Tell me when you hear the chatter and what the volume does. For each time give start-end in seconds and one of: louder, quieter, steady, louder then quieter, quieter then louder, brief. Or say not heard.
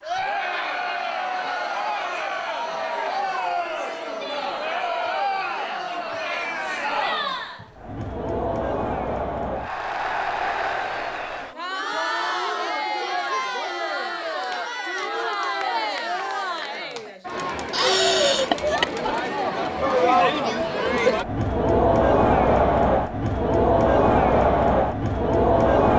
0.0-25.9 louder.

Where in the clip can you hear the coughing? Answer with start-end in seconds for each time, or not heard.
17.7-18.9.